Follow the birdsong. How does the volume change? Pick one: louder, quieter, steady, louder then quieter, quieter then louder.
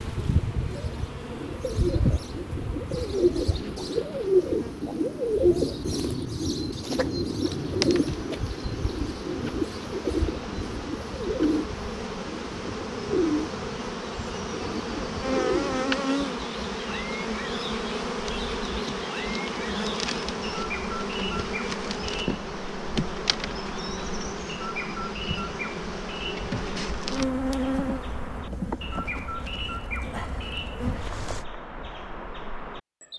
quieter.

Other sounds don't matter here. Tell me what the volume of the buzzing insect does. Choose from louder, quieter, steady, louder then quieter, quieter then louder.
louder.